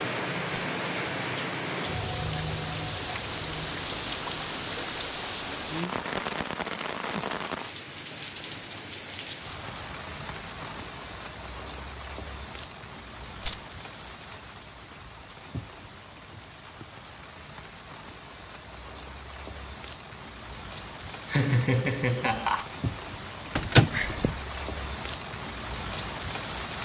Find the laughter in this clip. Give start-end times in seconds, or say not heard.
21.0-22.6.